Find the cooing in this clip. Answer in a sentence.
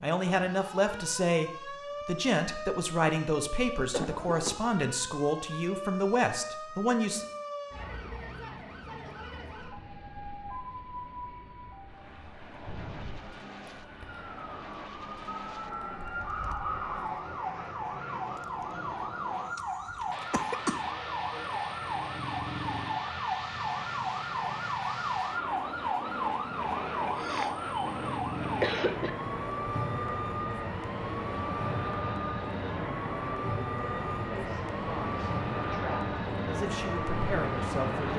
You can't hear the cooing here.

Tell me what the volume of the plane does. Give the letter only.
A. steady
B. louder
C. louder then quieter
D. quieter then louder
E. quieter
B.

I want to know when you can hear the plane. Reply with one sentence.
You can hear the plane from 7.8 to 38.1 s.